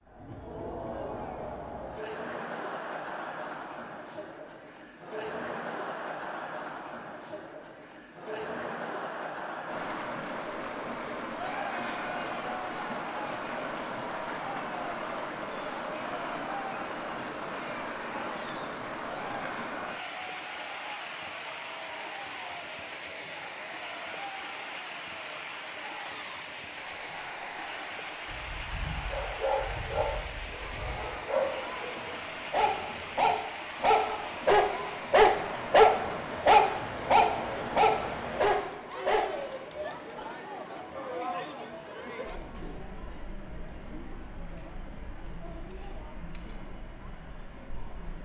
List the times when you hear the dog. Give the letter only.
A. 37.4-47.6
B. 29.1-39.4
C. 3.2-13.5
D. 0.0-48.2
B.